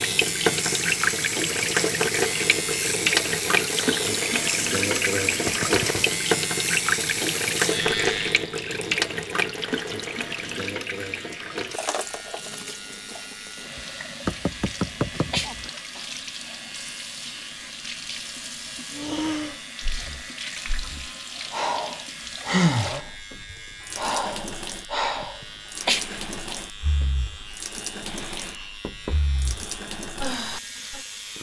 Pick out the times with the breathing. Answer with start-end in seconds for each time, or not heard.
18.9-31.0.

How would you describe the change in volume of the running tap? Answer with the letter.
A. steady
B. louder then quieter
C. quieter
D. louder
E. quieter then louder
C.